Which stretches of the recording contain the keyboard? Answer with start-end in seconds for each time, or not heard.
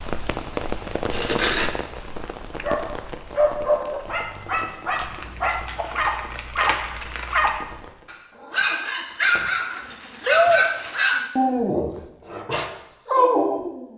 not heard.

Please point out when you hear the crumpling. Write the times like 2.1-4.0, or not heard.
1.1-1.7, 5.0-7.6, 9.3-11.1.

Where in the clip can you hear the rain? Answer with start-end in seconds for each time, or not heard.
0.0-8.1.